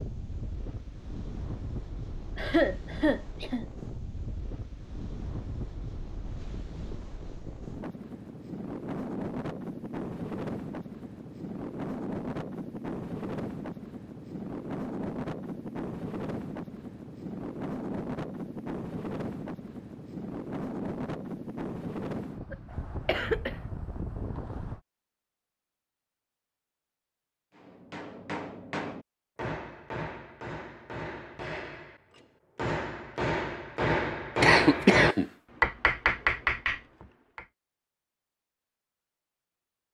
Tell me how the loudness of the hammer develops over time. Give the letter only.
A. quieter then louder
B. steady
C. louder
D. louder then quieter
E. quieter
C.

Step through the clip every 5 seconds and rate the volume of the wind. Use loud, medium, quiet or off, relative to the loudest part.
medium, loud, loud, loud, loud, off, off, off.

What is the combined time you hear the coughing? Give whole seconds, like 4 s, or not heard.
3 s.